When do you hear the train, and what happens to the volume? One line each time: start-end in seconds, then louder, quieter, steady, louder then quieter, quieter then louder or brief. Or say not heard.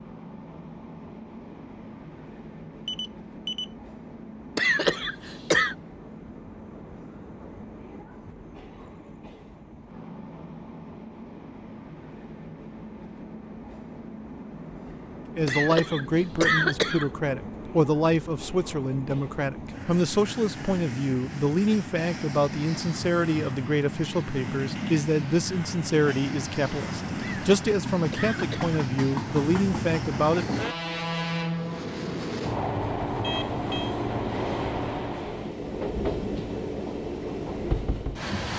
0.0-38.5 louder.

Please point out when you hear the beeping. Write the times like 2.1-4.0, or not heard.
2.9-3.6, 33.2-34.0.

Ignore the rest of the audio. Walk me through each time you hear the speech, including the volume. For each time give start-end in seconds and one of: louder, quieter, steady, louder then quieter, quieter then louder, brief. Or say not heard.
15.3-30.6 steady.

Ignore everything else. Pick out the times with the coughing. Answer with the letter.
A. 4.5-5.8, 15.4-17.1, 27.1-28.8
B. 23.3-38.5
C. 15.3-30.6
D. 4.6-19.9
A.